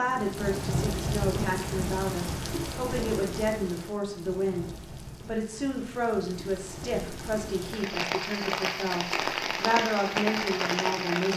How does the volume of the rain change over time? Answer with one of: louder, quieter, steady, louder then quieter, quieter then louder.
quieter then louder.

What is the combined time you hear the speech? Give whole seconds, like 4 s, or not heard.
11 s.